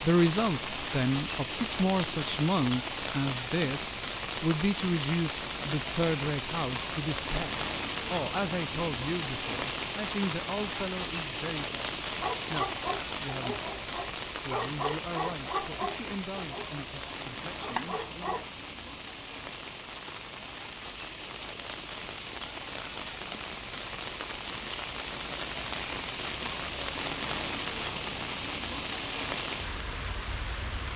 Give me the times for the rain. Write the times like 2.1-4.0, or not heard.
0.0-30.9.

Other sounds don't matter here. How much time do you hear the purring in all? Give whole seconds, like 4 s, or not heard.
not heard.